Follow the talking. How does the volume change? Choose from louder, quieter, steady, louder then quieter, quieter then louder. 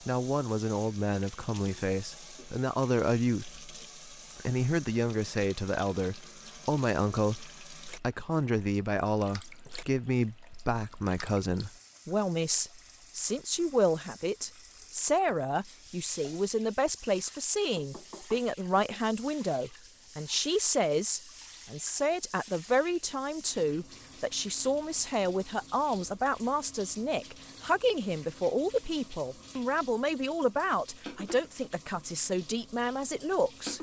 steady.